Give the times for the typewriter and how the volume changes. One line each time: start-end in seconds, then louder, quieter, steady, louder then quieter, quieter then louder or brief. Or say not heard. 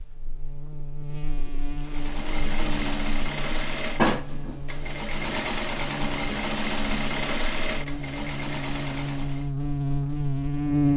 not heard.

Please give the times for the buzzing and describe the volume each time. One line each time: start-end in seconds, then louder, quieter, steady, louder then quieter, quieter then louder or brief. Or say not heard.
0.0-10.9 louder.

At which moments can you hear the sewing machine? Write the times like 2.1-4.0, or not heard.
1.8-9.5.